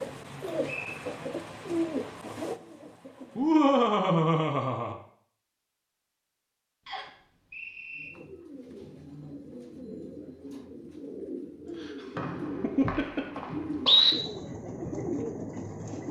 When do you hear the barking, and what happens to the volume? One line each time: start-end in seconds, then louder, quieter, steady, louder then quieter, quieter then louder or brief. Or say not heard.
not heard.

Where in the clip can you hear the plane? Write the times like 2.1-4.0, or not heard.
not heard.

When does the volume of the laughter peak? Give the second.
4 s.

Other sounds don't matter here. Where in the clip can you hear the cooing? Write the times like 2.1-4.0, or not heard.
0.0-3.9, 8.0-16.0.